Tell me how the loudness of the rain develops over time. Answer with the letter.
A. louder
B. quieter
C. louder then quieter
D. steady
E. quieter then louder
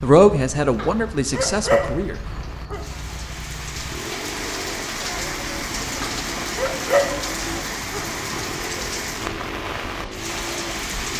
A.